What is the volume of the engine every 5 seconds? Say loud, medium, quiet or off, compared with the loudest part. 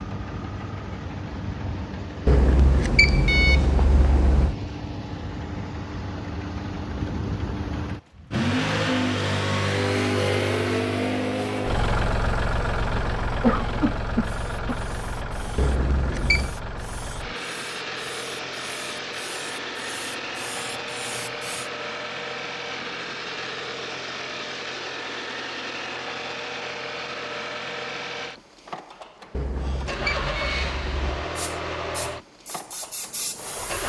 medium, loud, loud, medium, medium, medium, medium.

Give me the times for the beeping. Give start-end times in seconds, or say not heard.
2.2-4.5, 15.6-16.6, 29.3-31.3.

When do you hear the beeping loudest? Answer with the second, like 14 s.
3 s.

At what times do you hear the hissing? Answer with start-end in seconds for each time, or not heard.
14.2-21.7, 31.4-33.8.